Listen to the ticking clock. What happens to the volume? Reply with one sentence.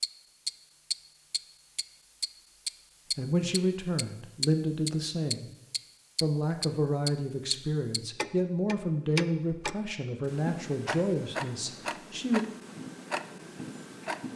The volume of the ticking clock goes down.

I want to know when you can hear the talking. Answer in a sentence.
The talking can be heard from 3.1 to 5.5 s and from 6.2 to 12.4 s.